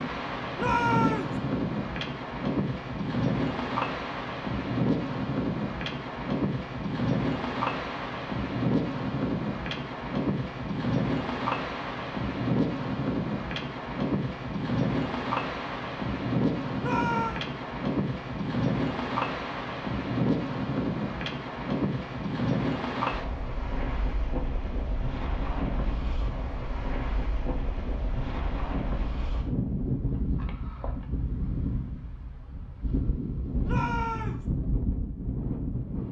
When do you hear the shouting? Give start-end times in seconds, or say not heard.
0.6-1.4, 16.8-17.4, 33.6-34.5.